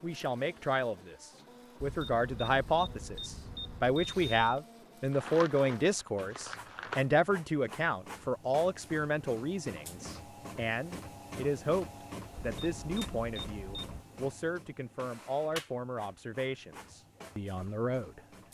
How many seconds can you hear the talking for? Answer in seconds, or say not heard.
18 s.